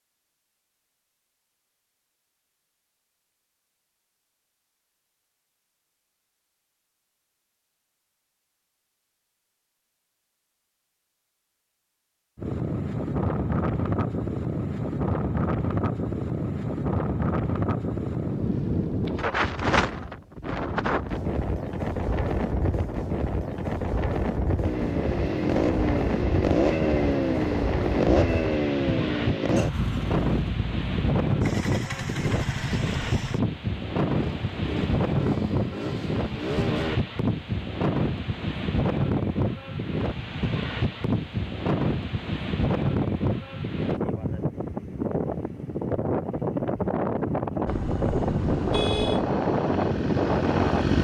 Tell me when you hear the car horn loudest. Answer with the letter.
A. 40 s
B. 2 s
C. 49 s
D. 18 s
C.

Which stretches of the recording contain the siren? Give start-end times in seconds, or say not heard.
not heard.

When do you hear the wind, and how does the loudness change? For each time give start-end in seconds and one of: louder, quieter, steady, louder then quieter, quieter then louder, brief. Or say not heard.
12.3-50.9 steady.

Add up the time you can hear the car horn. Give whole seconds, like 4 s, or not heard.
2 s.